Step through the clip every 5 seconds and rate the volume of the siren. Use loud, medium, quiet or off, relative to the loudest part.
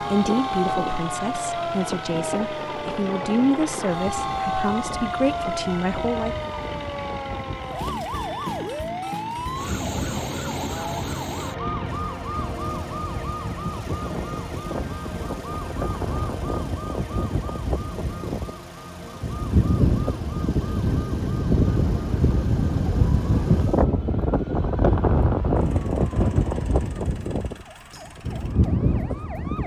loud, loud, loud, medium, quiet, quiet.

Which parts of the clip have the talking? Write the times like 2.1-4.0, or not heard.
0.0-6.5.